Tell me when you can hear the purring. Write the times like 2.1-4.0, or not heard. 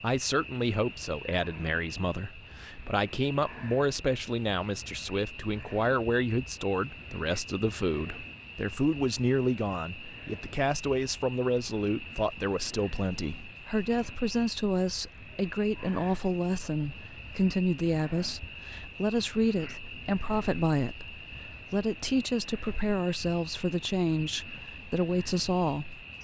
not heard.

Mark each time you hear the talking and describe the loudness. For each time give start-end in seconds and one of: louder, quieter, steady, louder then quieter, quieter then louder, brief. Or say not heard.
0.0-26.1 steady.